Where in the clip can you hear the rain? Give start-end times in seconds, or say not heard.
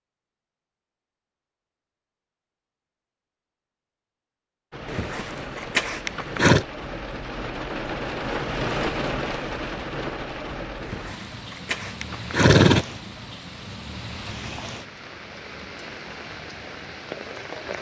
4.7-17.7.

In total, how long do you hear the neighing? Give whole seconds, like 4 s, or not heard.
4 s.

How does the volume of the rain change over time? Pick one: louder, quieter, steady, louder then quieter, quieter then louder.
louder then quieter.